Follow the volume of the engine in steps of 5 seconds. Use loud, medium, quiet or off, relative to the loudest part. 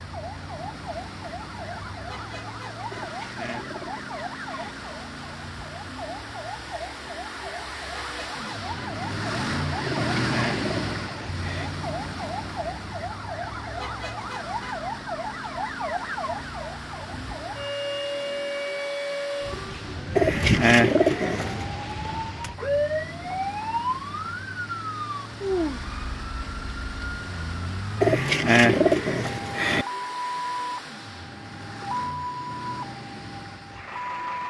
medium, loud, loud, medium, medium, medium, medium.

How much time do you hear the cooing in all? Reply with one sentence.
You can hear the cooing for 7 seconds altogether.